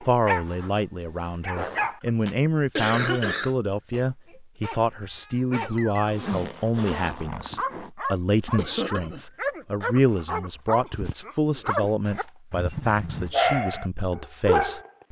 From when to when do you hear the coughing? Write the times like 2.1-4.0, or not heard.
2.0-4.0, 8.6-9.2.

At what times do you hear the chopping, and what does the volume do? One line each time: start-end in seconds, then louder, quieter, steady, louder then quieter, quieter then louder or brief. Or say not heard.
not heard.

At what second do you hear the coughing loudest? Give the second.
3 s.